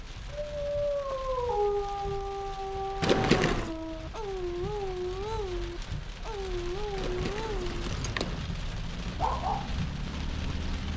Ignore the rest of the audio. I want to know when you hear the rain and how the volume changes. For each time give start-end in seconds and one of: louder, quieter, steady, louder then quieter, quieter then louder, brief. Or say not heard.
0.0-10.9 louder.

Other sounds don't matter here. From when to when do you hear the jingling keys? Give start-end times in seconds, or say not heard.
3.0-3.8, 7.0-8.5.